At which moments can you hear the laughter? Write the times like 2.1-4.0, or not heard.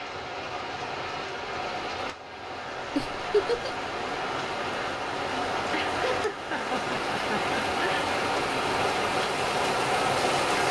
3.0-3.8, 5.7-8.1.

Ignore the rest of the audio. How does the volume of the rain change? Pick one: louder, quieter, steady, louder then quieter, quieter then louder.
louder.